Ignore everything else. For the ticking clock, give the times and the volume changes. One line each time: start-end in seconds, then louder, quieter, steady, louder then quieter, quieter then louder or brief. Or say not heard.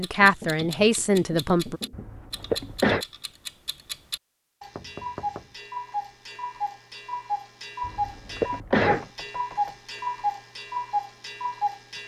0.0-12.0 louder.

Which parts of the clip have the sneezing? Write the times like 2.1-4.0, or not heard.
1.9-3.0, 7.8-9.1.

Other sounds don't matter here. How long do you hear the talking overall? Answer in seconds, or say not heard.
2 s.